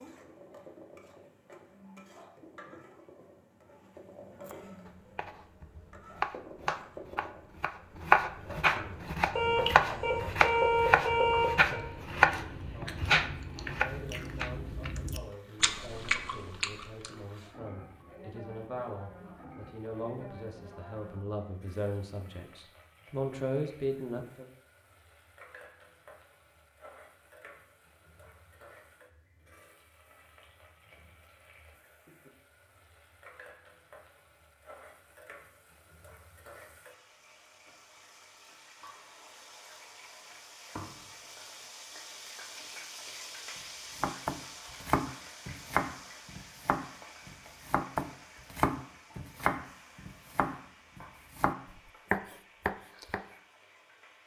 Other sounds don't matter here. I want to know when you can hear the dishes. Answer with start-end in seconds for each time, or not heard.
not heard.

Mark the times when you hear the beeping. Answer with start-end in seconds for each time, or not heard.
9.3-11.8.